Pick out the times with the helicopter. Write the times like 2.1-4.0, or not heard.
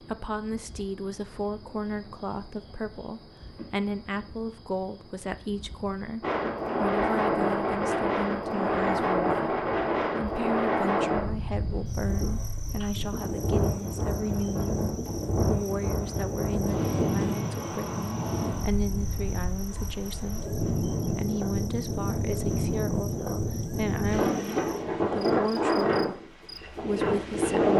not heard.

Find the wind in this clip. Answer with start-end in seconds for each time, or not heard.
6.2-27.7.